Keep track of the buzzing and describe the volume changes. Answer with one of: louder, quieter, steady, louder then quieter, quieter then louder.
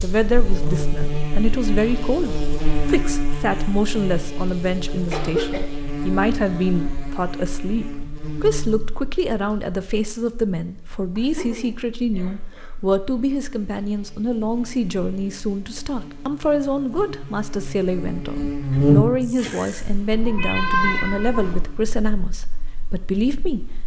quieter then louder.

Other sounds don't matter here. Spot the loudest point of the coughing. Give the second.
5 s.